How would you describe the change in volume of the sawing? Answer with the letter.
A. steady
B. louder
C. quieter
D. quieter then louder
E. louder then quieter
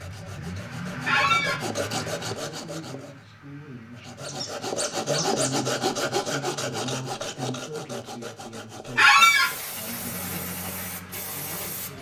E.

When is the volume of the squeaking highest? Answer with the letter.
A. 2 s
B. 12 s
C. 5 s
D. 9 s
D.